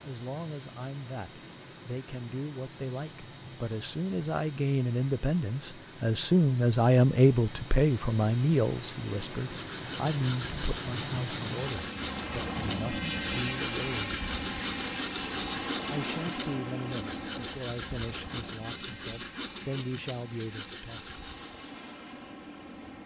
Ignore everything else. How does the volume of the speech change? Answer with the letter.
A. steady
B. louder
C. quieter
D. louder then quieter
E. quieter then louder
D.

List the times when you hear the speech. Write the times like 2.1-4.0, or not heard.
0.0-14.2, 15.8-21.1.